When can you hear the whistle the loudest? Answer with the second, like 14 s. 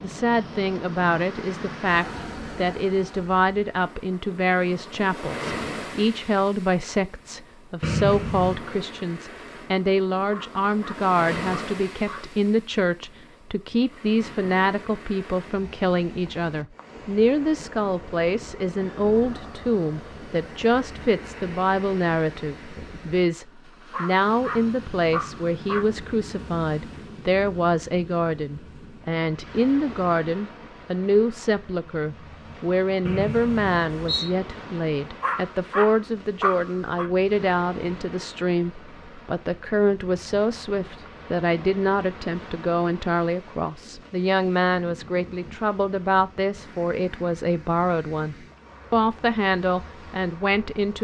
8 s.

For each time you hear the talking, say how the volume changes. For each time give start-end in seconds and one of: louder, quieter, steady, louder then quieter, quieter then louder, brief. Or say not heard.
0.0-50.9 steady.